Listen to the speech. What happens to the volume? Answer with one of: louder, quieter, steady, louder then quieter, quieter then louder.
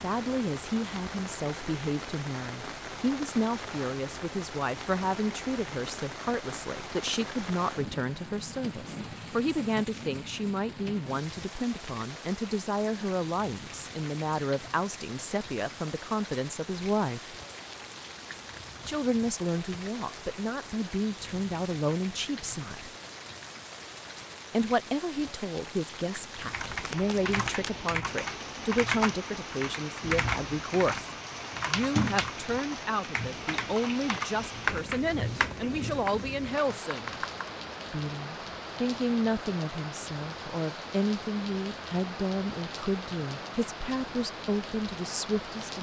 steady.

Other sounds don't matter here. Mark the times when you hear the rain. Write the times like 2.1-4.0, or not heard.
0.0-45.7.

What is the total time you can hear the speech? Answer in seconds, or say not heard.
42 s.